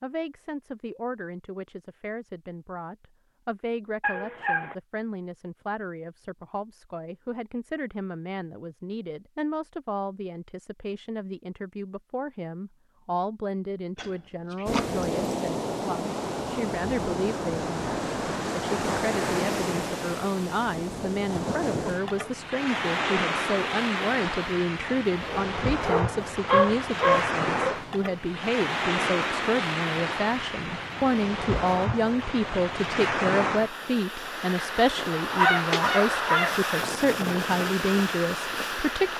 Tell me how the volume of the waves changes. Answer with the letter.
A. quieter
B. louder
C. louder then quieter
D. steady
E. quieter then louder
D.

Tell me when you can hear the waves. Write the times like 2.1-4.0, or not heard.
14.7-39.1.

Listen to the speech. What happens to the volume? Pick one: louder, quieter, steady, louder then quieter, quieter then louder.
louder.